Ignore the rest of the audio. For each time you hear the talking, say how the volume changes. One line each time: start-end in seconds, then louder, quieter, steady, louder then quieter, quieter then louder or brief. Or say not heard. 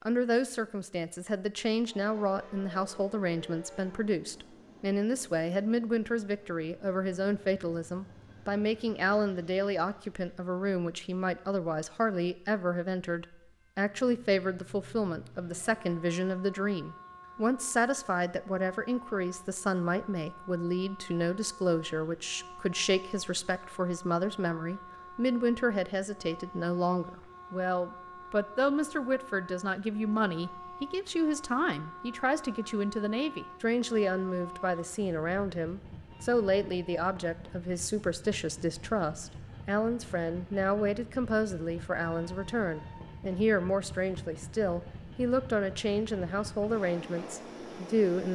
0.0-48.3 steady.